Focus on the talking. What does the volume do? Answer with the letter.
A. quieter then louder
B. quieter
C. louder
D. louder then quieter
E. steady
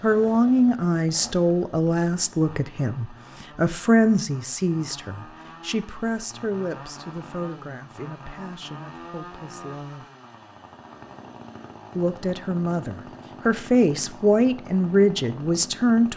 A.